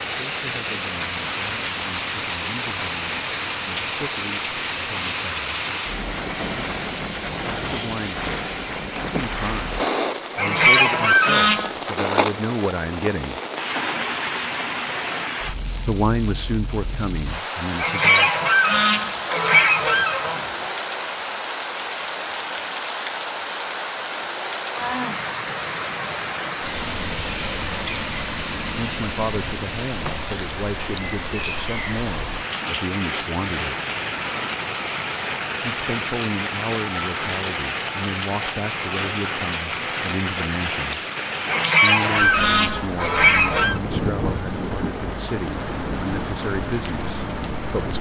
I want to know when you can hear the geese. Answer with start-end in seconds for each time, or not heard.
10.3-11.9, 17.8-20.7, 41.5-43.8.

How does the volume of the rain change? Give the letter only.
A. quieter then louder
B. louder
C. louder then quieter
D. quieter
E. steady
E.